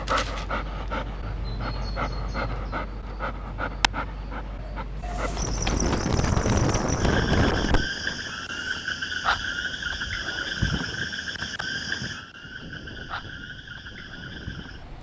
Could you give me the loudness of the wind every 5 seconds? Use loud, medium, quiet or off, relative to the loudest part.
off, loud, quiet.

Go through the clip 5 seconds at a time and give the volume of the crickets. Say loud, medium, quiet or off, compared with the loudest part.
off, loud, loud.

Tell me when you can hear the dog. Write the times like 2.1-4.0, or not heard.
0.0-5.9.